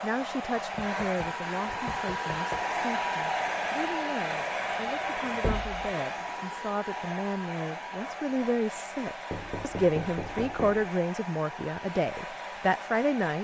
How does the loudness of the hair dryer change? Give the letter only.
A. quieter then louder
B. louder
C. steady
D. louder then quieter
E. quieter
E.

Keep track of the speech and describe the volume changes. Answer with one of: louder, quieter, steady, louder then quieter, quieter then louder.
louder.